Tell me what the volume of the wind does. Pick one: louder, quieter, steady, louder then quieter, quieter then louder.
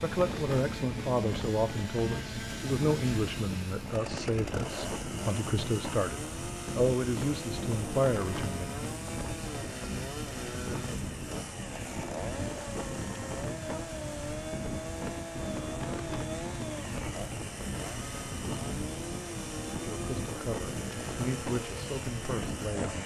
steady.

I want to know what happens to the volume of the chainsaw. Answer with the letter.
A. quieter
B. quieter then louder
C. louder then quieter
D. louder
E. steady
E.